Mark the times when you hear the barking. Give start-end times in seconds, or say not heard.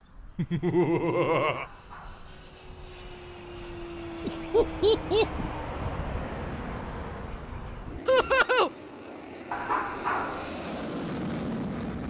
1.5-2.4, 9.5-10.6.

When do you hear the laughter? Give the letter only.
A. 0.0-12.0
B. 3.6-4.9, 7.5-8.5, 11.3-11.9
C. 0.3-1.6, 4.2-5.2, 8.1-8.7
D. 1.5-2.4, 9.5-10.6
C.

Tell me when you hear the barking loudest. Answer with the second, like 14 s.
10 s.